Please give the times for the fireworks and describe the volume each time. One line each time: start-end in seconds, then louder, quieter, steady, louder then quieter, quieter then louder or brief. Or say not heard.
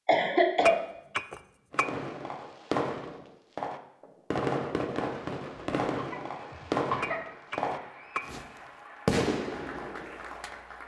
1.7-8.4 steady
9.1-10.5 brief.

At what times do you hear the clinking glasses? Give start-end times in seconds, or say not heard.
0.7-1.9, 7.0-8.2.